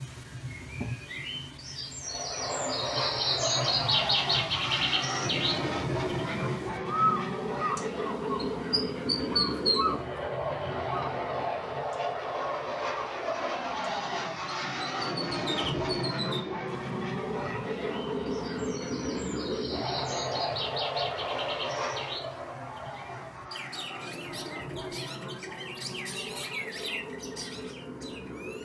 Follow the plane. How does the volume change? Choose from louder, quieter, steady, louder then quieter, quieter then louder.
quieter.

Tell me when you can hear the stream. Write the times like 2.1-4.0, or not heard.
not heard.